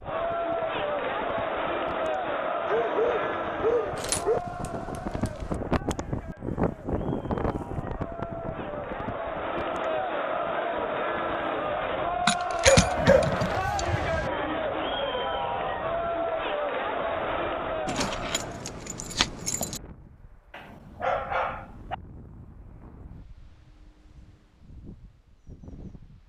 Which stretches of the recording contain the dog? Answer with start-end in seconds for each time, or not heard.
2.6-4.4, 12.6-14.3, 20.5-21.9.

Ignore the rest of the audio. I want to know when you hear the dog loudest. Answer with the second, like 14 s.
13 s.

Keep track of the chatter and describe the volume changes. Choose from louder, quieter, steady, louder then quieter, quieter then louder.
quieter then louder.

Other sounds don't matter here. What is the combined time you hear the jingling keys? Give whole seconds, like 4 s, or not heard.
5 s.